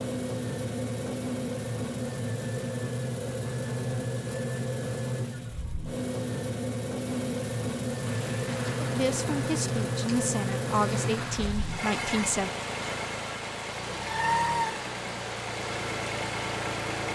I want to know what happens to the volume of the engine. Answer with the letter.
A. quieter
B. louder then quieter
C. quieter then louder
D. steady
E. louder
D.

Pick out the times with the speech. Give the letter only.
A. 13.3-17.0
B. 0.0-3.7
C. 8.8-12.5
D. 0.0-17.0
C.